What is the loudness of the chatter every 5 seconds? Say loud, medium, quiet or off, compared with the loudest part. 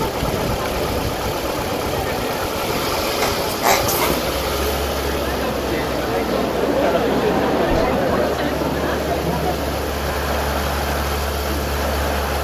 medium, loud, medium.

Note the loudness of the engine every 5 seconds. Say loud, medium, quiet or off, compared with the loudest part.
loud, medium, loud.